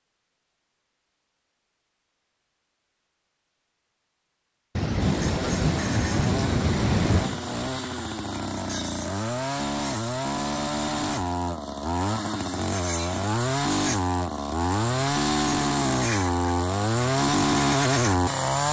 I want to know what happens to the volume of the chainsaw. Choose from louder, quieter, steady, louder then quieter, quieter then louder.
louder.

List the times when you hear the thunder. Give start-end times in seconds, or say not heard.
4.8-7.4.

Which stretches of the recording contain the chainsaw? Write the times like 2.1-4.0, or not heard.
5.0-18.6.